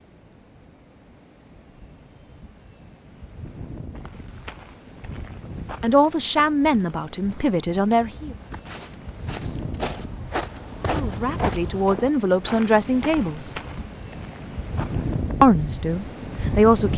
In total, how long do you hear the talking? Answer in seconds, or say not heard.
7 s.